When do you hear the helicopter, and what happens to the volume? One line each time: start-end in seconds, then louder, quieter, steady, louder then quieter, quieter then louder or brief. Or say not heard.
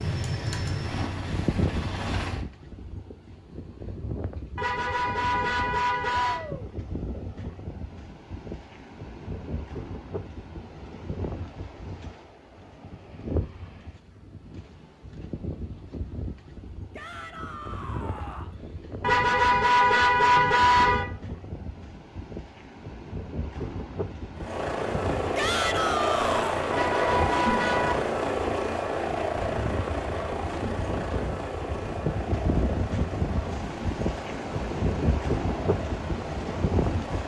0.0-2.5 brief
24.3-37.2 quieter.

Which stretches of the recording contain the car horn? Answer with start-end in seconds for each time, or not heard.
4.5-6.4, 19.0-21.1, 26.7-27.9.